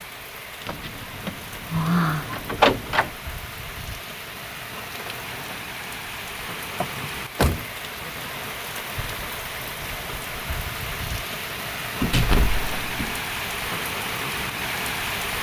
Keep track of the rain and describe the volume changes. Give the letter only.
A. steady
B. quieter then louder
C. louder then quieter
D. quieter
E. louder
E.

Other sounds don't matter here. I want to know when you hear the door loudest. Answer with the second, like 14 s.
3 s.